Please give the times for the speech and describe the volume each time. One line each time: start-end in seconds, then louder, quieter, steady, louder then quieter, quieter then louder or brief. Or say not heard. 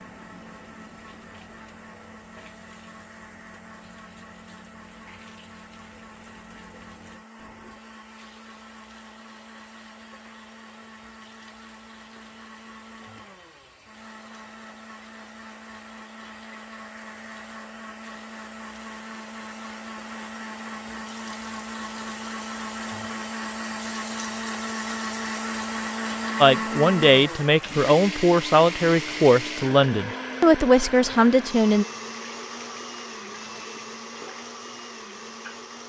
26.4-31.9 steady.